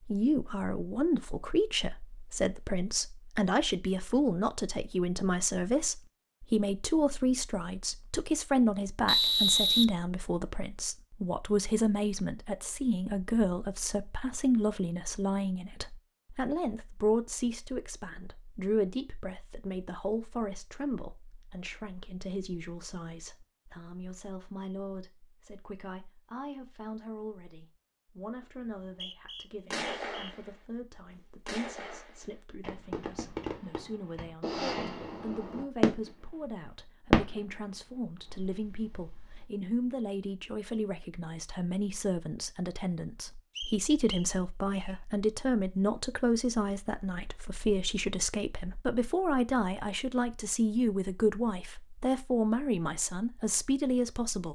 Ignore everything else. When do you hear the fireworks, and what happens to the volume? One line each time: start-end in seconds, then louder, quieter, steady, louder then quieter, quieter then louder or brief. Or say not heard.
29.7-30.5 brief
31.4-37.4 louder then quieter
38.2-39.5 brief.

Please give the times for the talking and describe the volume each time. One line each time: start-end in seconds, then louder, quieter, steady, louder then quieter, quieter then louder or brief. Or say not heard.
0.1-54.5 quieter then louder.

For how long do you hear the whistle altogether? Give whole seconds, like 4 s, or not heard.
4 s.